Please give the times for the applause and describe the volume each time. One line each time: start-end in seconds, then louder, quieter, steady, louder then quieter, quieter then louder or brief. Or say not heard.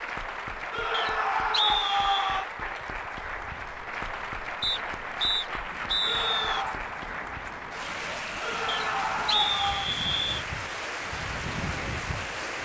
0.0-12.6 steady.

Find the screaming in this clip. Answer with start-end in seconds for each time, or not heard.
0.7-2.5, 6.0-6.8, 8.4-9.9.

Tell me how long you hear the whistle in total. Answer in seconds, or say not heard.
5 s.